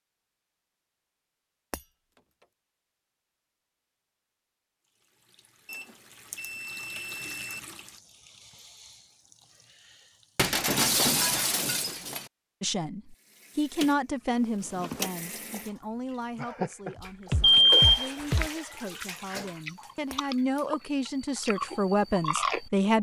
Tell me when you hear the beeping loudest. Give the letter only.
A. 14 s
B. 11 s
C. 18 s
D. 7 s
C.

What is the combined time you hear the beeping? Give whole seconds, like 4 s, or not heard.
3 s.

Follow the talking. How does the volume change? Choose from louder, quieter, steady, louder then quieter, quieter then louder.
quieter then louder.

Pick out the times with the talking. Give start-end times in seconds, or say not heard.
12.6-22.9.